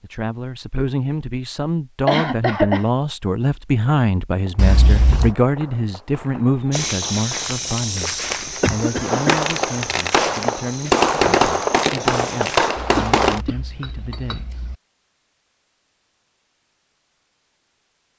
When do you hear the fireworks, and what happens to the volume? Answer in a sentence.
The fireworks can be heard from 4.3 to 13.4 s, getting louder.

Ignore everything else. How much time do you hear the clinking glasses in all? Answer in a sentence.
The clinking glasses can be heard for 3 seconds in total.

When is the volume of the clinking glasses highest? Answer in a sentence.
The loudest moment of the clinking glasses is at 5 seconds.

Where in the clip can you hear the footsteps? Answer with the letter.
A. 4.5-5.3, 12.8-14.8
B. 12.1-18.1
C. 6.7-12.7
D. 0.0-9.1
C.